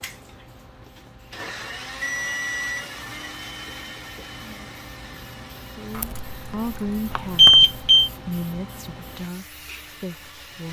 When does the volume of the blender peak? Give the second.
2 s.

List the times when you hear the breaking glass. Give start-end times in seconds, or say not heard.
not heard.